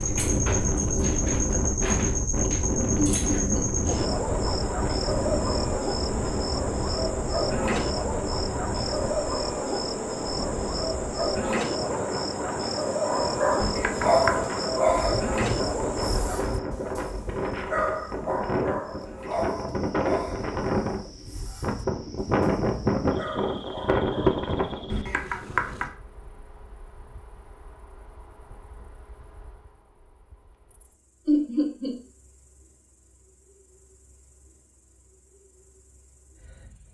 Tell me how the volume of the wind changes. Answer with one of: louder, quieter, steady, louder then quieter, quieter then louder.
quieter then louder.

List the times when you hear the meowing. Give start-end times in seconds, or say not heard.
13.6-14.4, 24.9-25.9.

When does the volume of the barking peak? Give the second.
14 s.